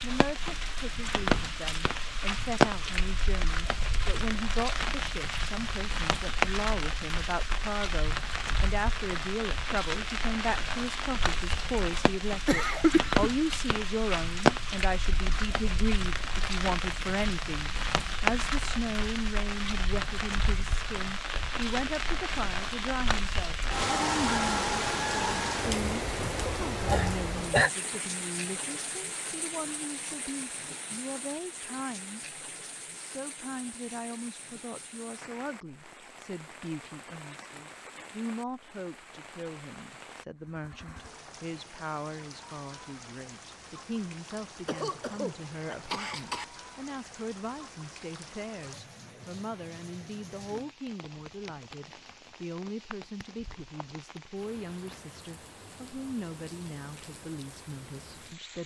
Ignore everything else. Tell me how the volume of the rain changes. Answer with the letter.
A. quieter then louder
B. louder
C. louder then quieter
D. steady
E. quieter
E.